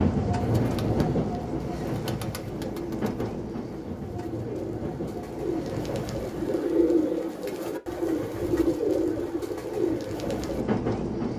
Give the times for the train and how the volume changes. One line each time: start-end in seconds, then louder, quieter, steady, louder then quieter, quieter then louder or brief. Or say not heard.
0.0-6.8 quieter
9.4-11.3 brief.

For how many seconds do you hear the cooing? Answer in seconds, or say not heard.
10 s.